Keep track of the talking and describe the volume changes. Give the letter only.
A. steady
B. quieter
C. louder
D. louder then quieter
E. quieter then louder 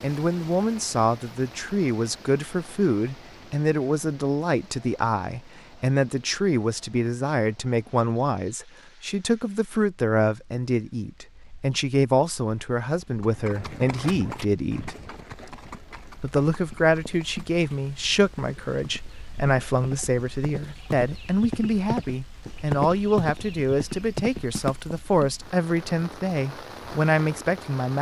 A.